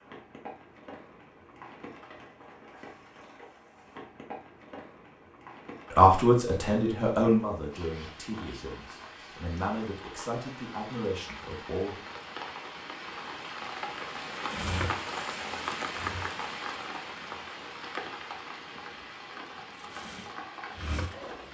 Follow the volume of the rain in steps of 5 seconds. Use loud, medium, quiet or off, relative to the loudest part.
medium, medium, loud, loud, medium.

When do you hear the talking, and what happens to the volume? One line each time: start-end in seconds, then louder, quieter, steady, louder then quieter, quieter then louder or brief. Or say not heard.
5.9-12.0 quieter then louder.